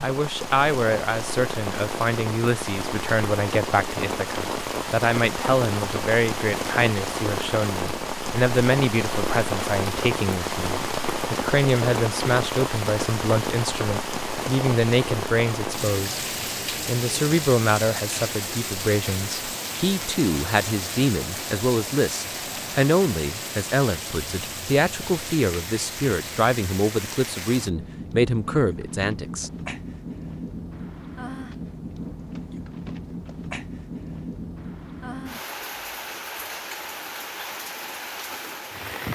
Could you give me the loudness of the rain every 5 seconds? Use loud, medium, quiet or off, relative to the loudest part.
loud, loud, loud, loud, medium, medium, medium, medium.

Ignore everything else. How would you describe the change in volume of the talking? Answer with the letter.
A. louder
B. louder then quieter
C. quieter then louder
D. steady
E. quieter
D.